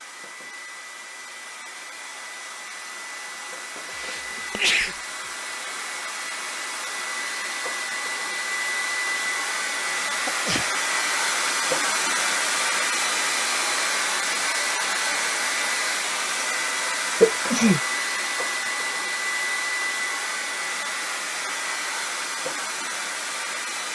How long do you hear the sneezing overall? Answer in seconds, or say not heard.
2 s.